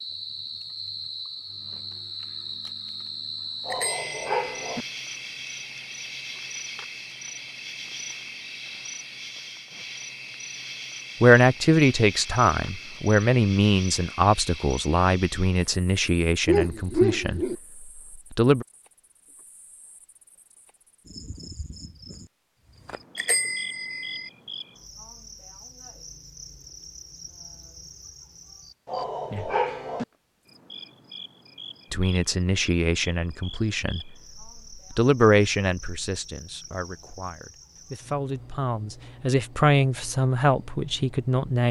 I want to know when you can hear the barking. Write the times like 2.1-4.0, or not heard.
3.6-4.8, 16.4-17.6, 28.9-30.1.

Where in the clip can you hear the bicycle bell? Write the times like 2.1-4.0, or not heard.
3.7-4.5, 23.1-24.3.